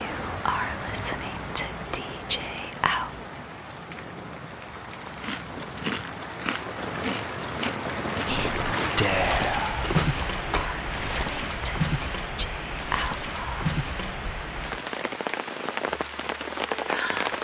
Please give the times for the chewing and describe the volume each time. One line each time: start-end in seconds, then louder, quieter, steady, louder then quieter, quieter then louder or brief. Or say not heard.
5.0-10.7 steady.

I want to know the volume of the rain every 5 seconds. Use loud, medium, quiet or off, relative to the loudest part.
medium, loud, loud, loud.